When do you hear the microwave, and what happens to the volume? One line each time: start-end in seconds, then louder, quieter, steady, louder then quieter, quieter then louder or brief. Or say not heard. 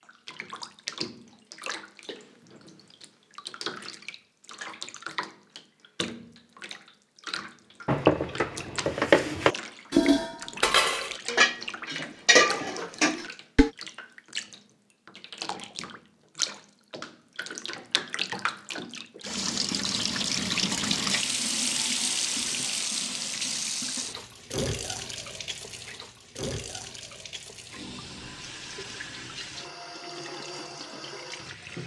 not heard.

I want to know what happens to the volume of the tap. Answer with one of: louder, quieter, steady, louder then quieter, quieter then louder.
louder then quieter.